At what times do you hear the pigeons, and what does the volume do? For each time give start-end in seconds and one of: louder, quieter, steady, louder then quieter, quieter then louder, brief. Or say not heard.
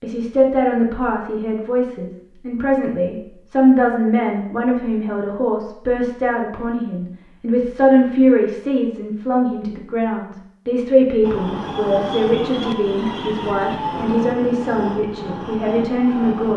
not heard.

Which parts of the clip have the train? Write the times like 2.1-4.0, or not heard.
11.2-16.5.